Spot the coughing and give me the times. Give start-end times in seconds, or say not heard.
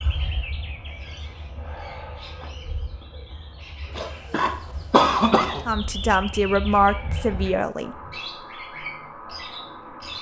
4.0-5.7.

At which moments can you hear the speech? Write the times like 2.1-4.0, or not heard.
5.7-8.0.